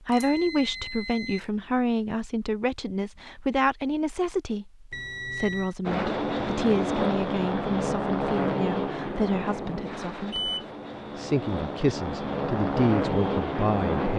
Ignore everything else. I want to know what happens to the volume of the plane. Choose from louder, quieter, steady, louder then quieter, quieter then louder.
quieter then louder.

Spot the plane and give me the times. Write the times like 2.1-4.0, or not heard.
5.8-14.1.